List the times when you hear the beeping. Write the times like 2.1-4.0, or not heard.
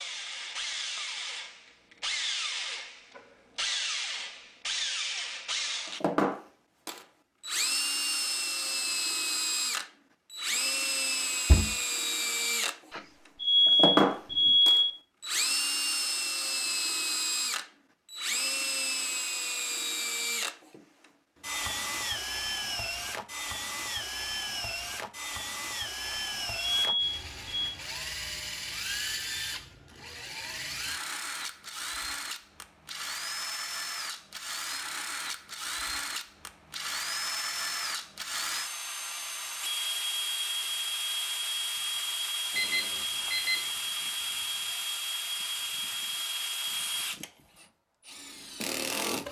12.9-14.9, 26.1-27.8, 42.5-43.6.